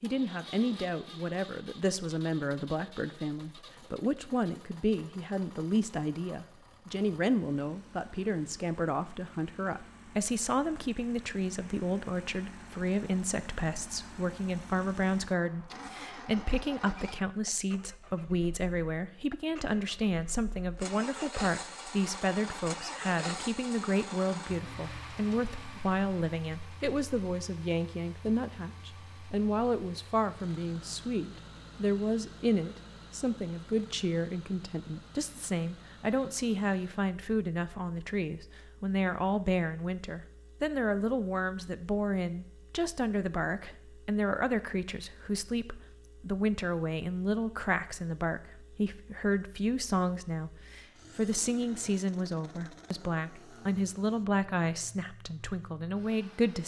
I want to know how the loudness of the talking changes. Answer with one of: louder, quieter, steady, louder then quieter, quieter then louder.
steady.